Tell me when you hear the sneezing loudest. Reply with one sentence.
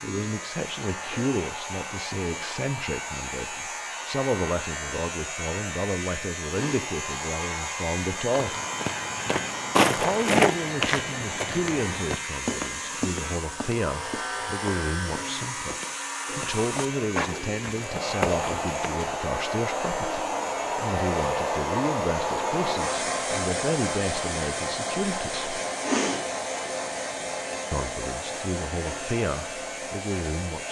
The volume of the sneezing peaks at 26 seconds.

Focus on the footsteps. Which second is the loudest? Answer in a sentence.
The loudest moment of the footsteps is at 10 seconds.